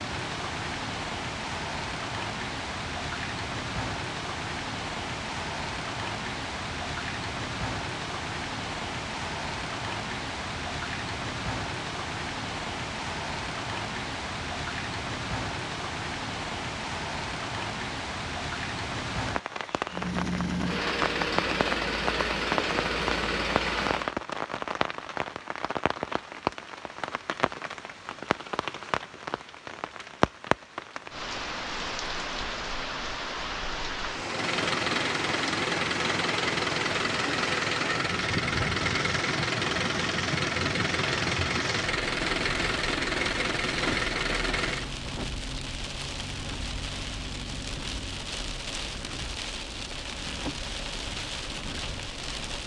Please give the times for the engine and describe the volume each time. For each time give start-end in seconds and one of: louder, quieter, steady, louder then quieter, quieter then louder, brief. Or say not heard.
19.9-24.1 steady
34.2-44.9 steady.